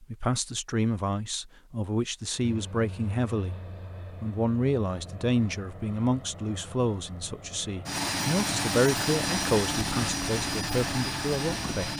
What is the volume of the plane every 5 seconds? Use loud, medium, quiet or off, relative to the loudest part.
quiet, loud, loud.